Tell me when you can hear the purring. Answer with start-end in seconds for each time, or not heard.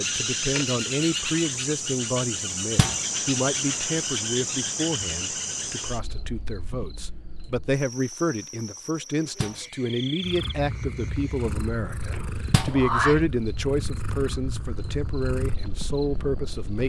10.2-16.8.